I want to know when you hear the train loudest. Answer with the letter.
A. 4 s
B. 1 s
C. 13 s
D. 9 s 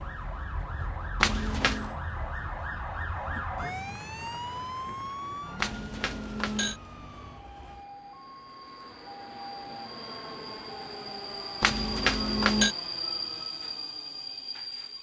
C.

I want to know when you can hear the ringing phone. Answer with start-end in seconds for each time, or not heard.
1.2-1.9, 5.5-6.8, 11.6-12.8.